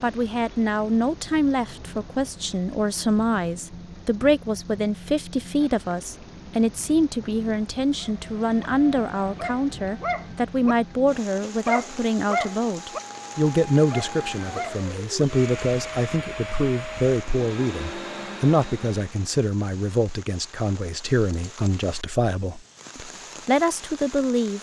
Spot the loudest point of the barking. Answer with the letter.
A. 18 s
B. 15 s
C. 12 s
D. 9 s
C.